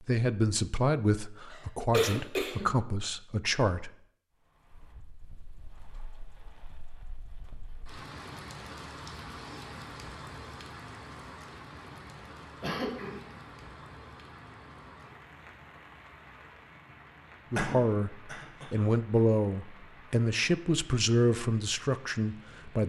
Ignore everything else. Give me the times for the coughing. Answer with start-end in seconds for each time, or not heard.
1.5-2.8, 12.6-13.2, 17.6-18.9.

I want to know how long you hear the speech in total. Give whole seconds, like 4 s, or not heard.
9 s.